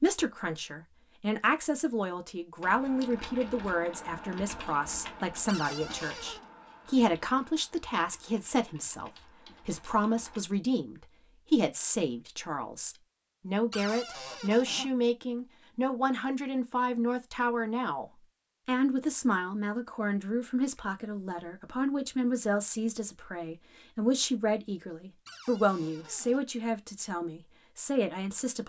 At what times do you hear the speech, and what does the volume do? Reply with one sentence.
You can hear the speech from 0.0 to 28.6 s, at a steady volume.